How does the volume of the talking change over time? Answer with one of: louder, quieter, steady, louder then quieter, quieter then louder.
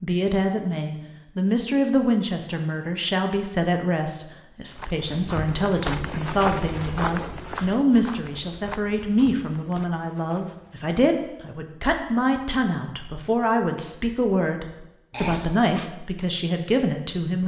steady.